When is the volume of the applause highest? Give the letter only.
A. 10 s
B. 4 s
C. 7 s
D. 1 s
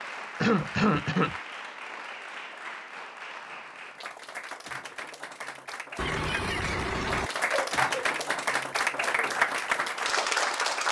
A.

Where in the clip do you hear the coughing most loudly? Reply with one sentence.
The volume of the coughing peaks at 1 second.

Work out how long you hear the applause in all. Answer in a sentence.
The applause can be heard for 11 seconds in total.